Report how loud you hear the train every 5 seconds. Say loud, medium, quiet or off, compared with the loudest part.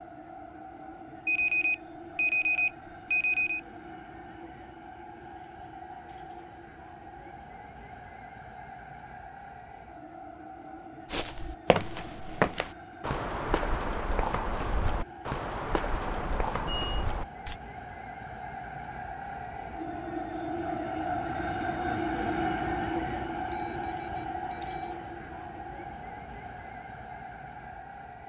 quiet, quiet, quiet, medium, loud, medium.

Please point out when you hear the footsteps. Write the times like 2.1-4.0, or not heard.
11.1-17.6.